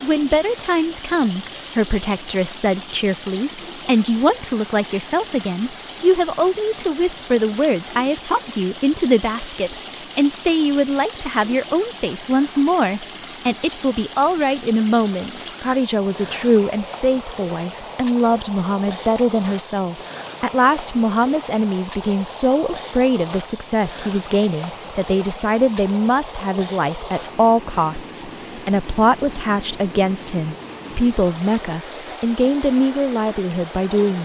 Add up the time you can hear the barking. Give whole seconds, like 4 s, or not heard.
not heard.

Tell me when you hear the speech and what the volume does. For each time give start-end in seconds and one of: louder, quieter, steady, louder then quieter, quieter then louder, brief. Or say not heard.
0.0-34.2 steady.